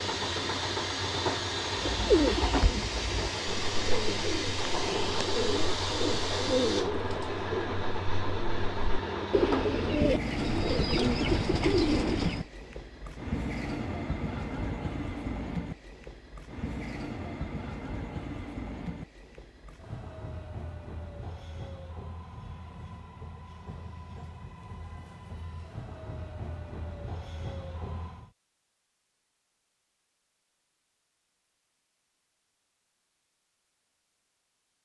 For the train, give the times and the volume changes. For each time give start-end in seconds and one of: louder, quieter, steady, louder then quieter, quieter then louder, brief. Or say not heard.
0.0-28.3 quieter.